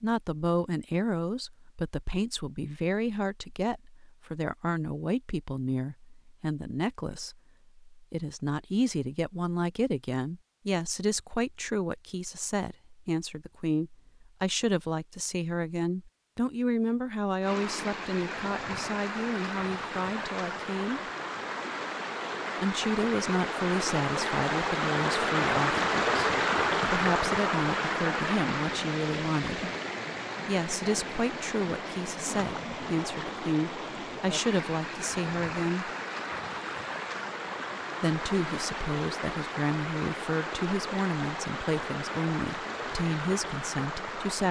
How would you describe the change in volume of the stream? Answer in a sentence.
The loudness of the stream goes up, then down.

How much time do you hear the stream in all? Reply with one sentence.
The stream can be heard for 27 seconds in total.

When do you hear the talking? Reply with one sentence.
The talking can be heard from 0.0 to 21.0 s, from 22.6 to 29.6 s, from 30.4 to 35.9 s and from 38.0 to 44.4 s.